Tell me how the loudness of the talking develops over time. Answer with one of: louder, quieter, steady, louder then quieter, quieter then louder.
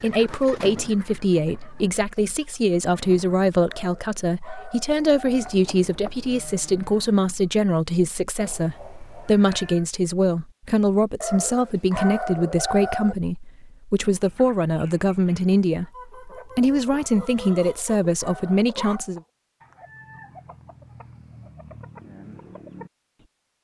steady.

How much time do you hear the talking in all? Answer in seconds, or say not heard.
19 s.